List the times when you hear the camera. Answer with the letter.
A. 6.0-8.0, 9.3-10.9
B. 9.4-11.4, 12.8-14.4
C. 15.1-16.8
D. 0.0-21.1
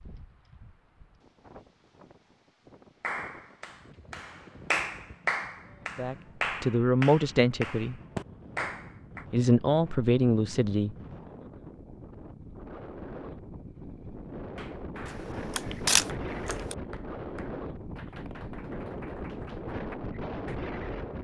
C.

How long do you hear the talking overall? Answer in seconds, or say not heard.
4 s.